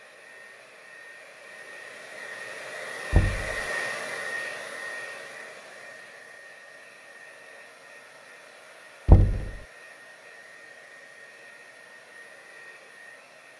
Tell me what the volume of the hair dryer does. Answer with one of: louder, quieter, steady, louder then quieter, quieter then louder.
louder then quieter.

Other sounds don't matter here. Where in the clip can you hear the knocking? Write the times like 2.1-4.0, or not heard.
3.1-3.6, 9.1-9.5.